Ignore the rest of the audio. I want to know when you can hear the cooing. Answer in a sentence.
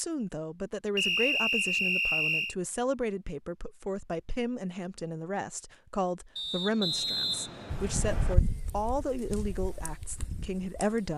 You can hear the cooing from 7.7 to 11.1 s.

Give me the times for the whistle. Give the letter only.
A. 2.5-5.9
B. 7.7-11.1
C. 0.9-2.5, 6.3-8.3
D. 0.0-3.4
C.